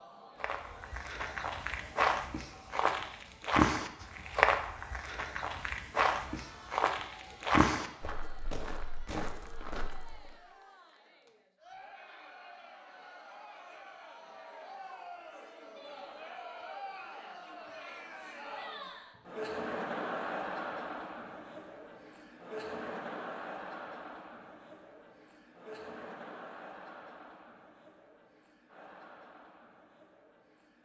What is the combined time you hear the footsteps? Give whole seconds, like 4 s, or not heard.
10 s.